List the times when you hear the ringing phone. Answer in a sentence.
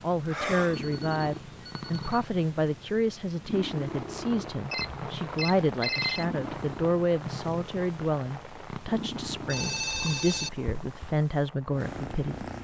You can hear the ringing phone from 0.2 to 2.2 s, from 4.7 to 6.2 s and from 9.4 to 10.5 s.